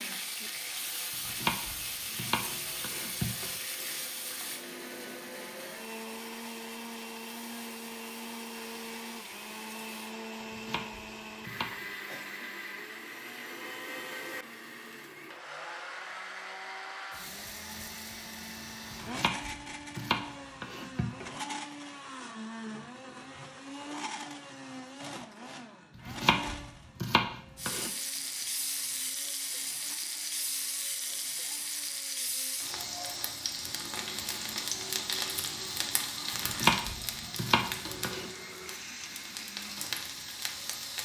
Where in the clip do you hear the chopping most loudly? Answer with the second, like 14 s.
37 s.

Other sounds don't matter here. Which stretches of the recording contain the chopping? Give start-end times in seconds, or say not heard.
1.2-3.5, 10.4-11.7, 18.9-21.4, 25.9-27.9, 36.5-38.3.